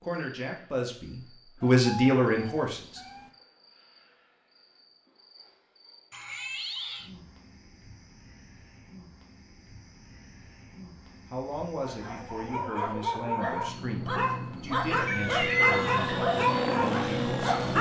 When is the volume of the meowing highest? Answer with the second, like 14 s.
16 s.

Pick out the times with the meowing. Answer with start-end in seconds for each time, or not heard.
1.6-3.3, 6.1-7.1, 15.1-16.0.